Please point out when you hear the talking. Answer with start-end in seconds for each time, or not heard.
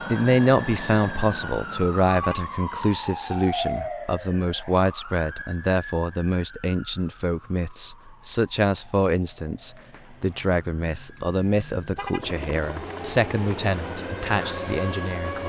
0.1-15.4.